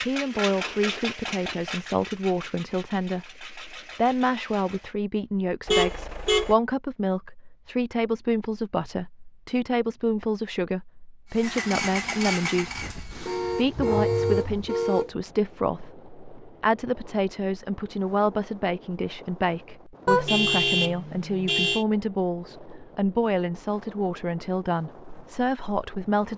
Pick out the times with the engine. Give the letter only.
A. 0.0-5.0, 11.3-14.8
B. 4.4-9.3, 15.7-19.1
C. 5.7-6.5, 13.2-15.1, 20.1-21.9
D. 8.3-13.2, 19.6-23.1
A.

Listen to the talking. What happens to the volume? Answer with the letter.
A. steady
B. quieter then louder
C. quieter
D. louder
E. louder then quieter
A.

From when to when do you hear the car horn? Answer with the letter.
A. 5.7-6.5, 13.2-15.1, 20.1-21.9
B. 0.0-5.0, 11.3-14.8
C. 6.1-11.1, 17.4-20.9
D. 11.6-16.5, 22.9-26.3
A.